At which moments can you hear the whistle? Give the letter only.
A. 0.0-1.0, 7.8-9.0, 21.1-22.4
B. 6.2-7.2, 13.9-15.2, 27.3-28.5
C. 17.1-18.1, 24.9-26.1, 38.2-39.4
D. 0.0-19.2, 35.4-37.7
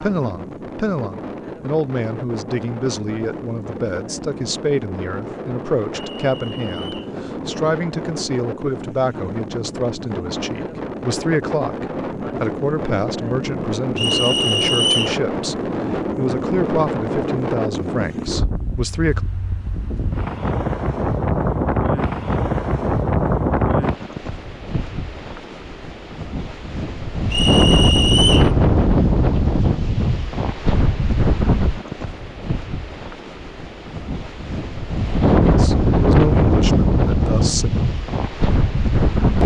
B.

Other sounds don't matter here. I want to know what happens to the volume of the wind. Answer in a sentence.
The loudness of the wind goes up.